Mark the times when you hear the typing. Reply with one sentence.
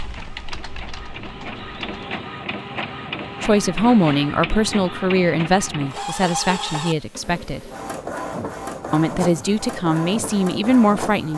You can hear the typing from 0.0 to 2.2 s.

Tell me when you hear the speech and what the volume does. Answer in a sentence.
You can hear the speech from 3.4 to 7.7 s, getting quieter; and briefly from 8.9 to 11.3 s.